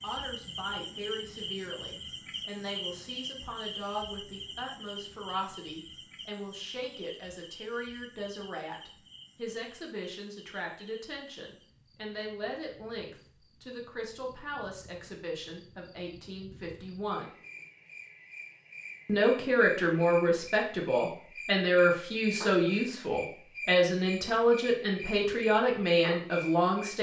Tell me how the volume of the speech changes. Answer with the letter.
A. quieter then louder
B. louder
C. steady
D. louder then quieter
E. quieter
B.